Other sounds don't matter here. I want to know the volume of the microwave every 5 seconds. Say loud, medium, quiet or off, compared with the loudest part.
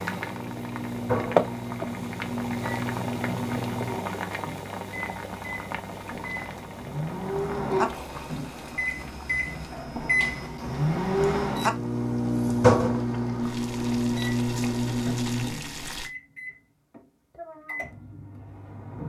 medium, medium, loud, medium.